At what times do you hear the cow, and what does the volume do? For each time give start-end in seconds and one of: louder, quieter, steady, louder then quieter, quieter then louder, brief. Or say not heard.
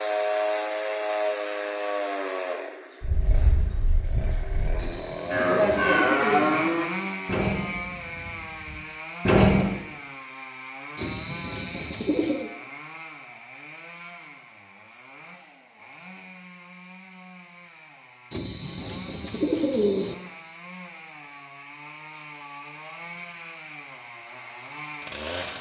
3.0-9.7 louder then quieter.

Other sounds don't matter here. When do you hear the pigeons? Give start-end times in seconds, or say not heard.
4.8-6.7, 10.9-12.5, 18.3-20.1.